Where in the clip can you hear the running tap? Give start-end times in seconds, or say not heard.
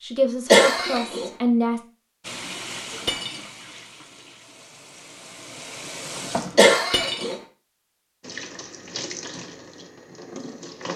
2.2-6.8, 8.2-10.9.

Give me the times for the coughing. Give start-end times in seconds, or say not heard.
0.5-1.3, 6.5-7.3.